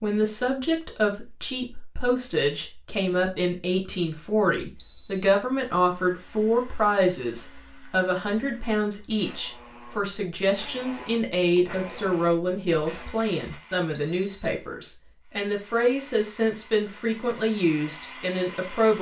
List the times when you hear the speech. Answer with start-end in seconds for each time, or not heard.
0.0-18.9.